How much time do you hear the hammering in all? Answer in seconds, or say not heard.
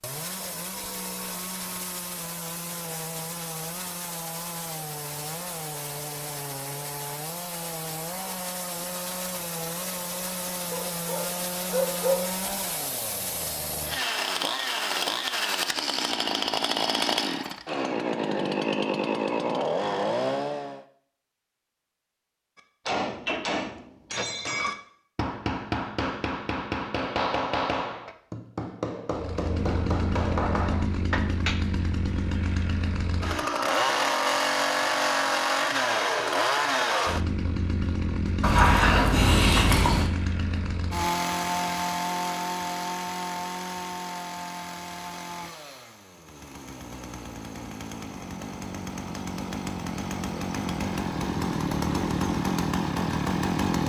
9 s.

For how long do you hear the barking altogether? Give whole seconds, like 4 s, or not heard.
3 s.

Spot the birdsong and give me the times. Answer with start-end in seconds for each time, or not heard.
not heard.